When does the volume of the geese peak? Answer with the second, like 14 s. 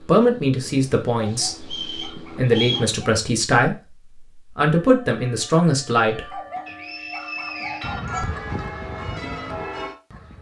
8 s.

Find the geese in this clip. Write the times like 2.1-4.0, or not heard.
7.8-10.3.